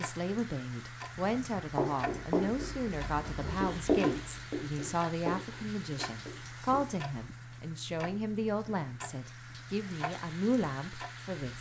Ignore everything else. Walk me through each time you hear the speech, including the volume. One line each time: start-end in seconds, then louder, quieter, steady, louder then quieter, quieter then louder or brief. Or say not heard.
0.0-11.5 steady.